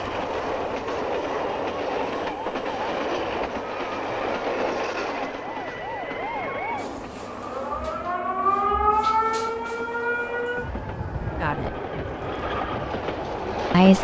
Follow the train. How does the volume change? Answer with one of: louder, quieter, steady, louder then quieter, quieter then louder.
quieter then louder.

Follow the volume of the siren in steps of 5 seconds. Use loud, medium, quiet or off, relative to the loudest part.
quiet, loud, medium.